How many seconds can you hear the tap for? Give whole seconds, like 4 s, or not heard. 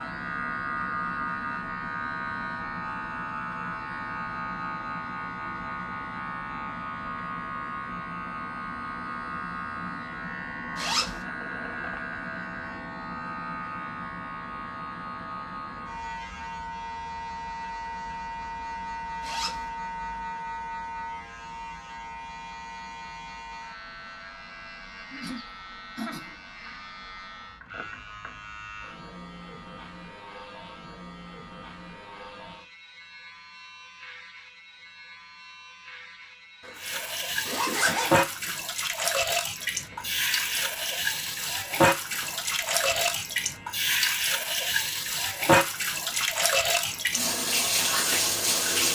12 s.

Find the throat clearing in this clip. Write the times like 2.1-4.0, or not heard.
25.1-26.4.